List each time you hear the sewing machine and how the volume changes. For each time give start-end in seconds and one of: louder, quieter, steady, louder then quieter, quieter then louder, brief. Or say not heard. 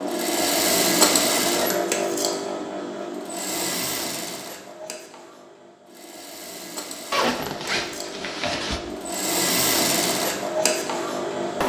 0.0-11.6 quieter then louder.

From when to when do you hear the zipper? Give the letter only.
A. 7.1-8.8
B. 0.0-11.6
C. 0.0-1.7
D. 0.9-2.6
A.